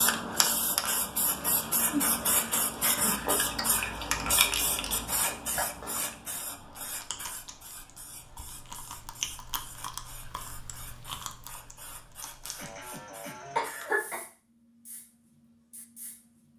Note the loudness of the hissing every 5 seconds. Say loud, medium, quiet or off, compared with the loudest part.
loud, medium, quiet, quiet.